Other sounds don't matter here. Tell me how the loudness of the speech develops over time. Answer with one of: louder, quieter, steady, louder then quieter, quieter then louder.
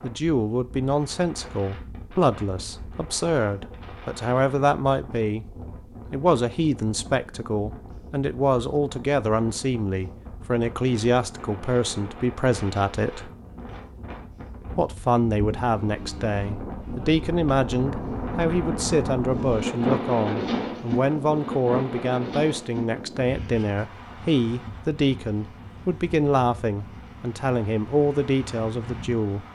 steady.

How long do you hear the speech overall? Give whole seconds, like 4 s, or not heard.
27 s.